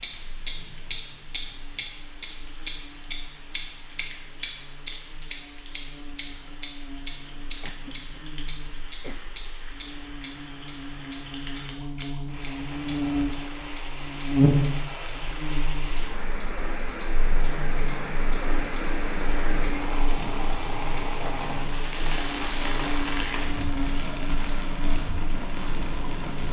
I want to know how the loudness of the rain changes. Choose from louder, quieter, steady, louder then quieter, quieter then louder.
louder.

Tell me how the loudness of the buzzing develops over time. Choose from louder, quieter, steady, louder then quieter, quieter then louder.
louder then quieter.